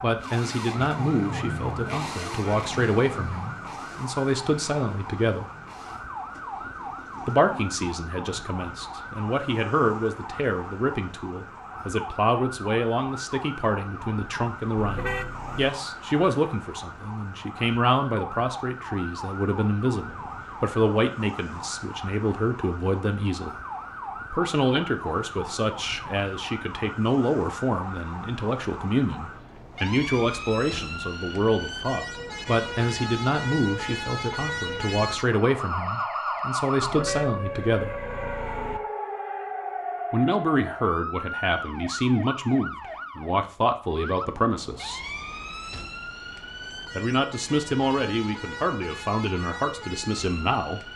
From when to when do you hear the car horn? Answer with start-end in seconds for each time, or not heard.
14.8-15.8, 36.8-38.8.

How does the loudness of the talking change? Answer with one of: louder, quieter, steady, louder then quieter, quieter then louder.
steady.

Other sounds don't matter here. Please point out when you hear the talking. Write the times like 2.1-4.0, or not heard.
0.0-5.5, 7.2-23.6, 24.3-38.0, 40.1-45.0, 47.0-50.9.